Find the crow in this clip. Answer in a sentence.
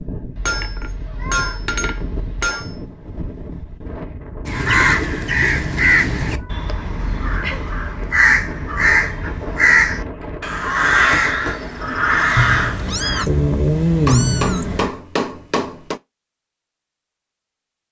The crow can be heard from 4.5 to 13.2 s.